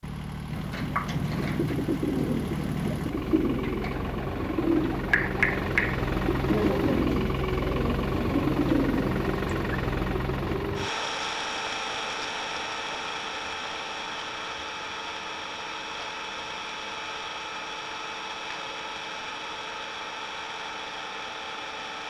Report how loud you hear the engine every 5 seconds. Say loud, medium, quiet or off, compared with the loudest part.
medium, loud, loud, medium, medium.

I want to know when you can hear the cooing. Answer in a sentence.
You can hear the cooing from 0.5 to 9.8 s.